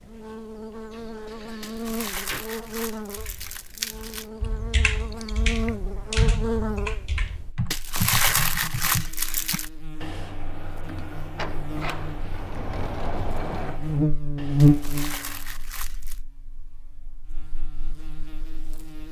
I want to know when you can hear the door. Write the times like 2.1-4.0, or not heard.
0.9-2.5, 11.3-13.8.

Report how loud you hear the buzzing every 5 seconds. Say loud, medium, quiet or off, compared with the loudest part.
medium, medium, loud, quiet.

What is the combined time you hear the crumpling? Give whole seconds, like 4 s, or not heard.
6 s.